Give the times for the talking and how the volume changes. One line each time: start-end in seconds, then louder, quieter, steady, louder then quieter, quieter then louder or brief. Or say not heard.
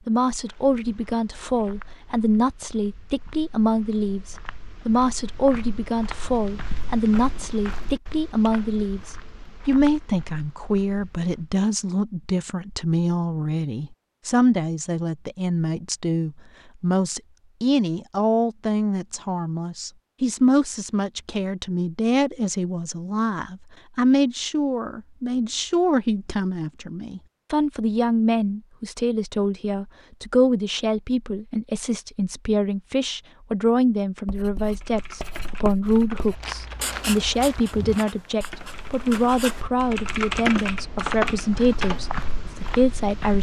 0.1-43.3 steady.